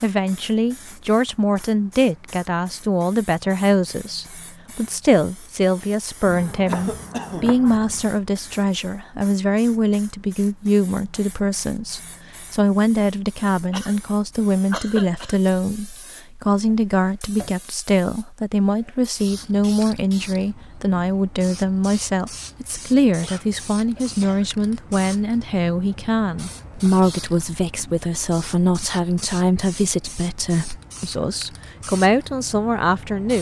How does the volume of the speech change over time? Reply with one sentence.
The loudness of the speech stays about the same.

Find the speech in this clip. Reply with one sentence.
You can hear the speech from 0.0 to 33.3 s.